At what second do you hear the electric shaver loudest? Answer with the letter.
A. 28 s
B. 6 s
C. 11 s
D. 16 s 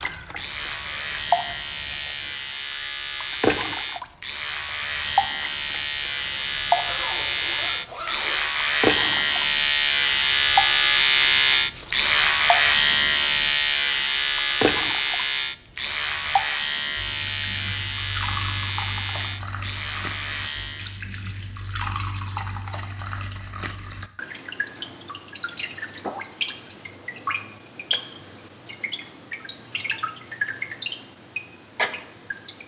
C.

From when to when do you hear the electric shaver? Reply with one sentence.
The electric shaver can be heard from 0.3 to 21.1 s.